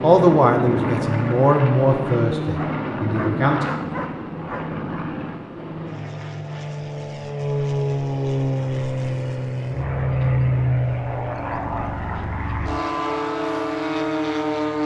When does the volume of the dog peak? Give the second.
4 s.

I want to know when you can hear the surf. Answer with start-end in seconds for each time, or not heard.
not heard.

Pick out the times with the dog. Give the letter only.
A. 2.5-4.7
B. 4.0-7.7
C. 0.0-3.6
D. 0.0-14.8
A.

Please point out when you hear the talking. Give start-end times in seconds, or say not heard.
0.0-3.6.